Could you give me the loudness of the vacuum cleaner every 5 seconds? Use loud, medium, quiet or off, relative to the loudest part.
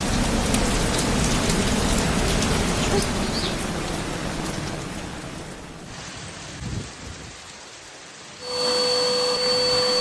off, loud.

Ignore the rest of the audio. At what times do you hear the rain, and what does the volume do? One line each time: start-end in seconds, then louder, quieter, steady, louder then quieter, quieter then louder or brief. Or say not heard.
0.0-9.9 quieter.